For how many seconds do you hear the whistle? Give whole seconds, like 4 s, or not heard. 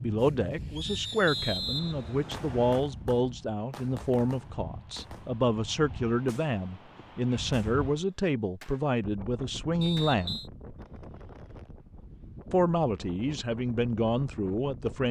3 s.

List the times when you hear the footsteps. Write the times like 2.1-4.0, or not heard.
not heard.